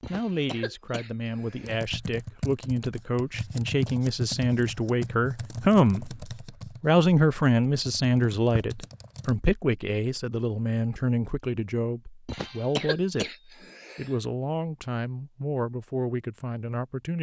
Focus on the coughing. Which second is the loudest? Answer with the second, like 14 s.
13 s.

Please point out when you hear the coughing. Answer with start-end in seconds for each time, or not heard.
0.0-1.8, 12.2-14.2.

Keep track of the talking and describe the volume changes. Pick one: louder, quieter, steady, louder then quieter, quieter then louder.
louder then quieter.